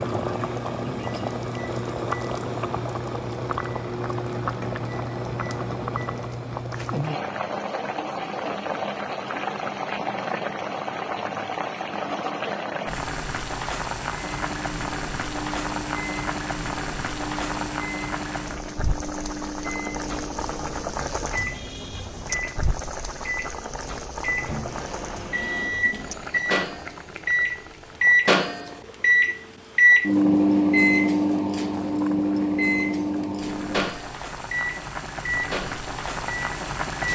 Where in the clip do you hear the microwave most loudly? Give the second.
30 s.